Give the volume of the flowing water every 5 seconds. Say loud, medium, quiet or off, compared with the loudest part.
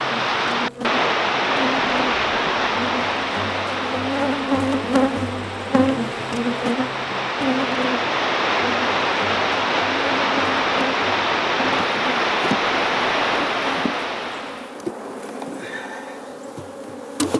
loud, loud, loud, off.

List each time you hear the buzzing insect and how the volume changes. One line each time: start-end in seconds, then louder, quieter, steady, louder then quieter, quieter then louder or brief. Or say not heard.
0.0-17.3 louder then quieter.